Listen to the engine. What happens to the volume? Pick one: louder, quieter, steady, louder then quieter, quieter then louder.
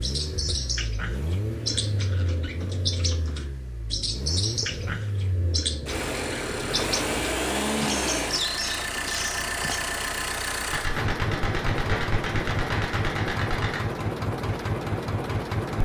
louder.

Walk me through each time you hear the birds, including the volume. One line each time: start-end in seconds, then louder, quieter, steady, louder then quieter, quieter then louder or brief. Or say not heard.
0.0-9.8 steady.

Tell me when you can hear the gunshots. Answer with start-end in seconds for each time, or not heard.
10.7-13.9.